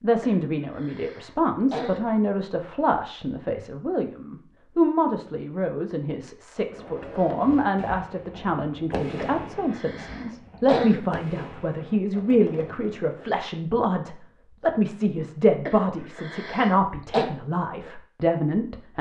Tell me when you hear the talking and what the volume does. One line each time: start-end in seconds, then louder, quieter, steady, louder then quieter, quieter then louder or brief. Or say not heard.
0.0-18.9 steady.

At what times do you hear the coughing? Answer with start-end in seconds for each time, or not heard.
0.2-2.1, 9.2-11.2, 15.7-17.3.